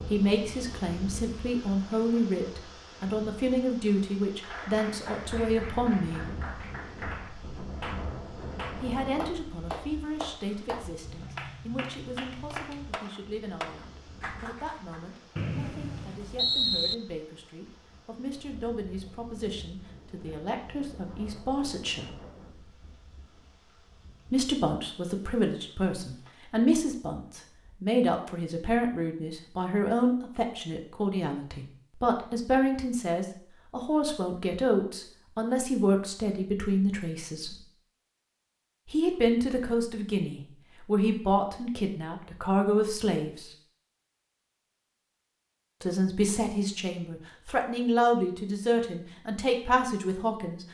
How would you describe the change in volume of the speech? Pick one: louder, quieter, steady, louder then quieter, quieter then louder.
quieter then louder.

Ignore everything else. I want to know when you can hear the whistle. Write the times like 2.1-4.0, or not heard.
15.3-16.9.